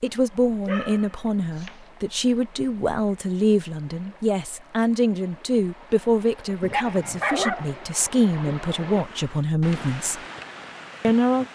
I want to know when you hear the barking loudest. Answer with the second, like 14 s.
7 s.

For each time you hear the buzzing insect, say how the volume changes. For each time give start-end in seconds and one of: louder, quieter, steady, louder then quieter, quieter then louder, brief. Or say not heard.
not heard.